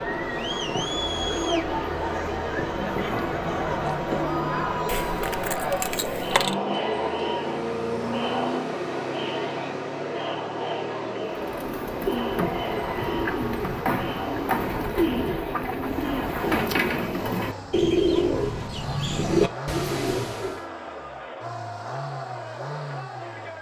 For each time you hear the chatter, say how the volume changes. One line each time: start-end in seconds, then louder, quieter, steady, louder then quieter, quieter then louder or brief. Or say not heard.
0.0-23.5 quieter.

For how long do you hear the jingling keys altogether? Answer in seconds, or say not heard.
2 s.